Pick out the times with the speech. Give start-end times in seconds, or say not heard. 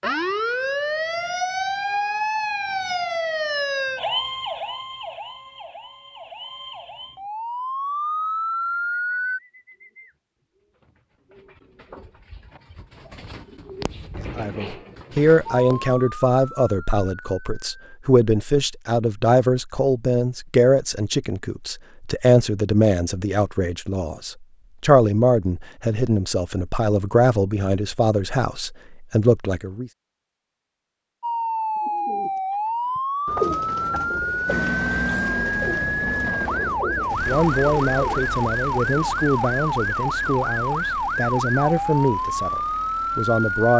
14.3-29.9, 37.1-43.7.